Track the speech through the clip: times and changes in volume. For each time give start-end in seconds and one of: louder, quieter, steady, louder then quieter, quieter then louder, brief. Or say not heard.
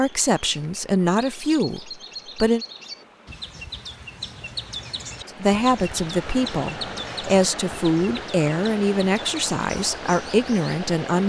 0.0-2.6 brief
5.2-11.2 steady.